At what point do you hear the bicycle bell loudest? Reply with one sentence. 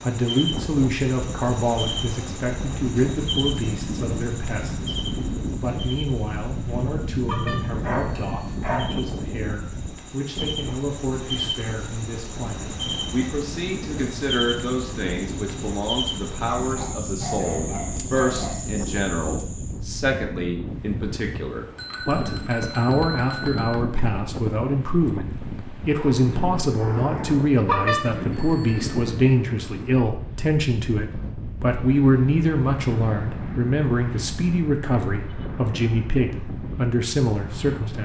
The volume of the bicycle bell peaks at 28 seconds.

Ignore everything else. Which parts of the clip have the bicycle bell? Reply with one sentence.
You can hear the bicycle bell from 7.2 to 8.6 s, from 21.8 to 23.8 s and from 27.6 to 29.1 s.